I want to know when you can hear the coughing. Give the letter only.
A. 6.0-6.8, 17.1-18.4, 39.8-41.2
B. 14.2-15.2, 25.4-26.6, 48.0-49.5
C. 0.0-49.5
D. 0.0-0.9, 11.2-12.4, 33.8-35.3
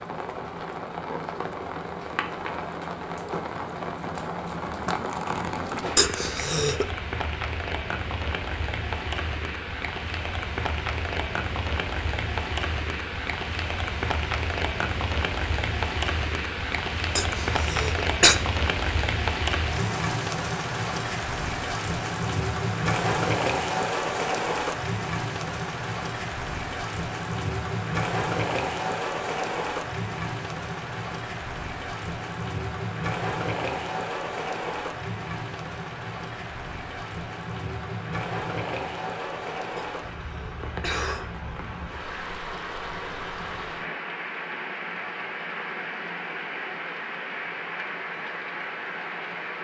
A.